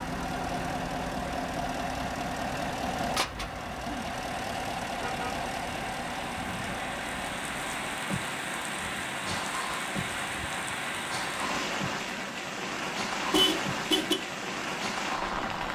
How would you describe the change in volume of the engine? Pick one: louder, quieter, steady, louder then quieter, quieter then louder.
quieter.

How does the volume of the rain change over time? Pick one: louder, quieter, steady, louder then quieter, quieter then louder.
louder.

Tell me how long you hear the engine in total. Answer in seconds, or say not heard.
16 s.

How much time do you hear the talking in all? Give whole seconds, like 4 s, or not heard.
not heard.